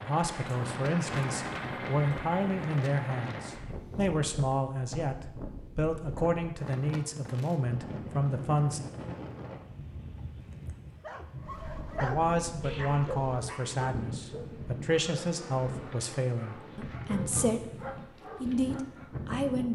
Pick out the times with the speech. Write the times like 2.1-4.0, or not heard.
0.0-8.9, 12.0-17.7, 18.4-19.6.